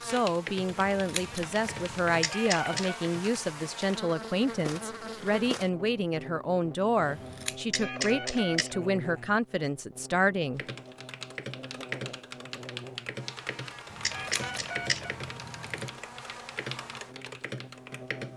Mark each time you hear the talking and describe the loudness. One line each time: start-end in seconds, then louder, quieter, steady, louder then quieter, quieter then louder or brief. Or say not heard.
0.0-10.7 steady.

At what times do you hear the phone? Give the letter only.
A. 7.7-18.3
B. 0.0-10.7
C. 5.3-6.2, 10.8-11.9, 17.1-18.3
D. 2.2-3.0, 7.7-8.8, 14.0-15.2
D.